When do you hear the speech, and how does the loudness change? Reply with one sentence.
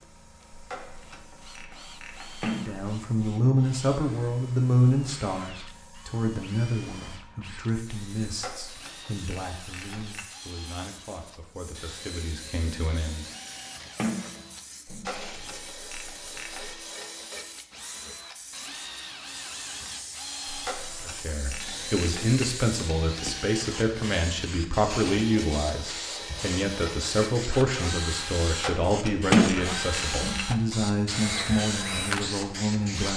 You can hear the speech from 2.5 to 13.2 s, getting quieter; and from 21.0 to 33.1 s, at a steady volume.